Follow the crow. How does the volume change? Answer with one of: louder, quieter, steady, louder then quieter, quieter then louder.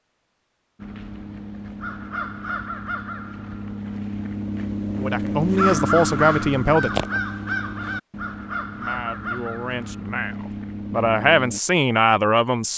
louder then quieter.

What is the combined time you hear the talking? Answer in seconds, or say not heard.
6 s.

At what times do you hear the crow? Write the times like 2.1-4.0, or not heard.
0.8-11.6.